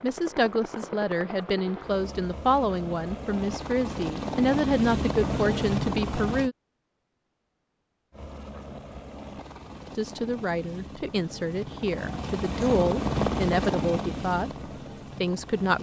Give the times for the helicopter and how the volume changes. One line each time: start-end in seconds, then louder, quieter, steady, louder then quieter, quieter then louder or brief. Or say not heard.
0.0-6.5 louder
8.1-15.7 louder then quieter.